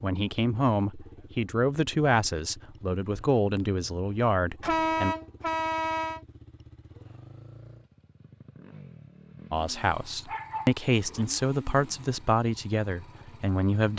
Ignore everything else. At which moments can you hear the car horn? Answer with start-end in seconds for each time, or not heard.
4.6-6.2.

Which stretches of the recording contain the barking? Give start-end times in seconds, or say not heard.
10.2-11.2.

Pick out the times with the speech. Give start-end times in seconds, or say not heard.
0.0-5.2, 9.5-13.9.